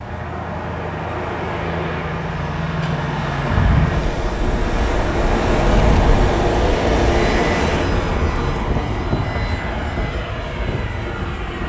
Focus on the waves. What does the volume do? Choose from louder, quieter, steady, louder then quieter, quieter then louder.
louder then quieter.